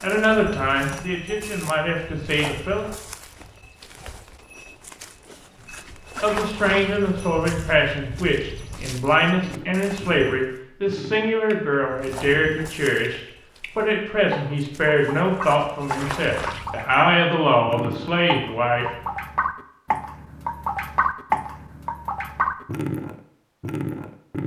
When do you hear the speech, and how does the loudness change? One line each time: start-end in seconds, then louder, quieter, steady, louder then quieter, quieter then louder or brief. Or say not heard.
0.0-2.9 brief
6.2-18.9 steady.